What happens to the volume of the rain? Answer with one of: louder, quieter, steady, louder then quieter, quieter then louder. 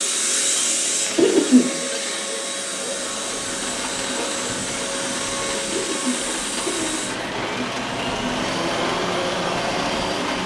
steady.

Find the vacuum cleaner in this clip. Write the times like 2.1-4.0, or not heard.
0.0-10.4.